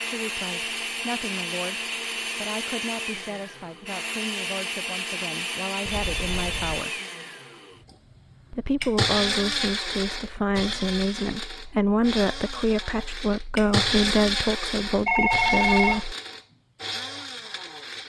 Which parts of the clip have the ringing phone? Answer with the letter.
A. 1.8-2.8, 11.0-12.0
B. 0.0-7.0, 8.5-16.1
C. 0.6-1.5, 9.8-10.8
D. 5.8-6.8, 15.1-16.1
D.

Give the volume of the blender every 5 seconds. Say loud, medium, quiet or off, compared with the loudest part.
loud, loud, loud, medium.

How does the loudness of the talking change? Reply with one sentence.
The loudness of the talking goes up.